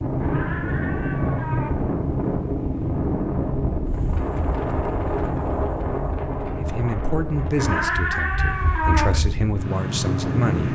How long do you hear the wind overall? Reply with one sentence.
The wind can be heard for 11 seconds in total.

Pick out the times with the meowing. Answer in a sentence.
You can hear the meowing from 0.2 to 1.7 s and from 7.5 to 9.1 s.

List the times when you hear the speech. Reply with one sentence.
The speech can be heard from 6.5 to 10.7 s.